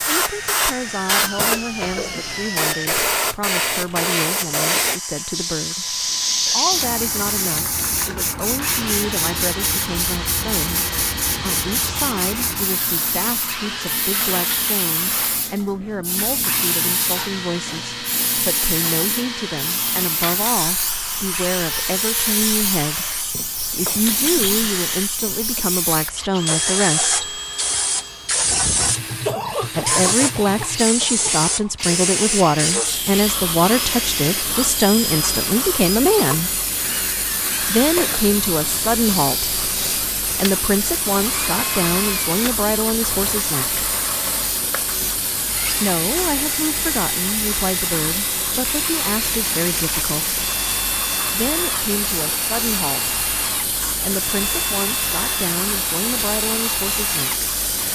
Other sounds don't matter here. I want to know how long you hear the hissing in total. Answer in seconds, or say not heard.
58 s.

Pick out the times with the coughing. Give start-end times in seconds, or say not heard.
1.4-2.3, 29.2-31.3.